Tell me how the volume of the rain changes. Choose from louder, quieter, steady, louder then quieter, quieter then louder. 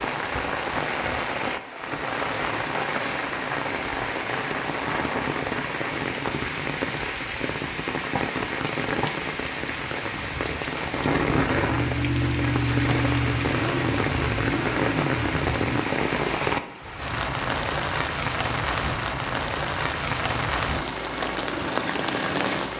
steady.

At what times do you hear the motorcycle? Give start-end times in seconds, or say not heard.
11.3-15.8.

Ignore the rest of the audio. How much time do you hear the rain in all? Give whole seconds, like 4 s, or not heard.
23 s.